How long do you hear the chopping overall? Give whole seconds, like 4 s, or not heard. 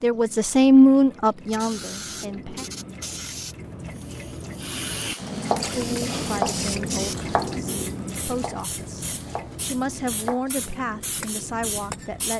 7 s.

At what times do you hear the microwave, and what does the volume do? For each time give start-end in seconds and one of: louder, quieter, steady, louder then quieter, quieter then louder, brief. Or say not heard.
not heard.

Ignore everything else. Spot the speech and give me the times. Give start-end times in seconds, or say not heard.
0.0-2.6, 5.8-12.3.